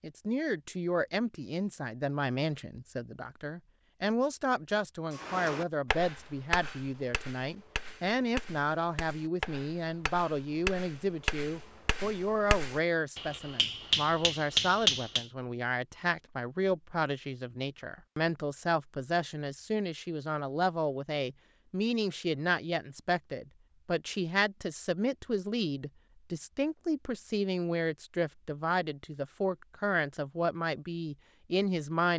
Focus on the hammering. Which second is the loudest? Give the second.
15 s.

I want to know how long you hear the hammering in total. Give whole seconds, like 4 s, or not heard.
10 s.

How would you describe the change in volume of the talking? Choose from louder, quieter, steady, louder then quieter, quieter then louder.
steady.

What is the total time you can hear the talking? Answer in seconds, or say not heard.
32 s.